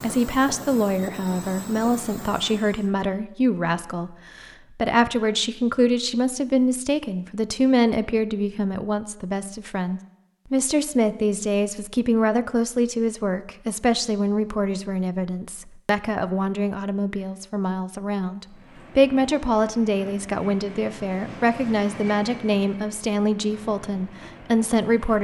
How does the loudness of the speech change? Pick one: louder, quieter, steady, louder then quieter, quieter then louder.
steady.